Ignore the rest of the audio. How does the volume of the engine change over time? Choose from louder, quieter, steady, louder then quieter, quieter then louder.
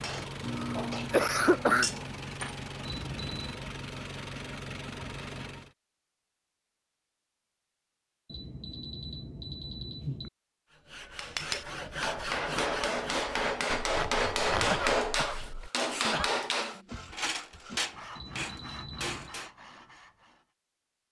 steady.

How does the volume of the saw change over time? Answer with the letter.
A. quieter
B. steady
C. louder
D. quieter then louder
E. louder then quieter
A.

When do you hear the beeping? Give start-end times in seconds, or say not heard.
2.9-3.6, 8.2-10.3, 18.1-19.4.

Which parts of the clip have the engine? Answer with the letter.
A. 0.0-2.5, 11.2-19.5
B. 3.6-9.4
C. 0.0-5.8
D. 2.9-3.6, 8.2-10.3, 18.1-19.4
C.